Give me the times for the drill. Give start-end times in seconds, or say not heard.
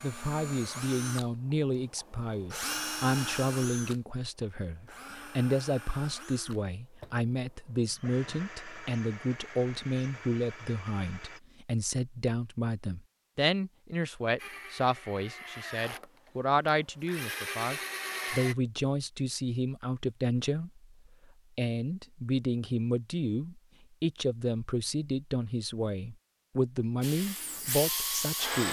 0.0-11.4, 14.3-18.6, 27.0-28.6.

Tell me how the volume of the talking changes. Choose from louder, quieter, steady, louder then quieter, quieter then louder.
steady.